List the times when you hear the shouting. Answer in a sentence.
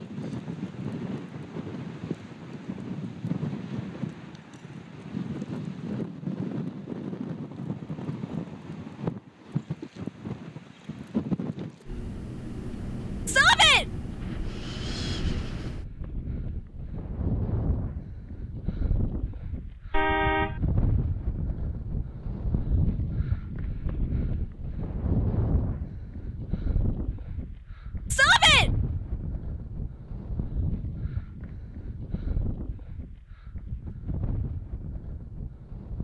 You can hear the shouting from 13.2 to 13.8 s and from 28.1 to 28.7 s.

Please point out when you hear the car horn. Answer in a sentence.
The car horn can be heard from 19.9 to 20.6 s.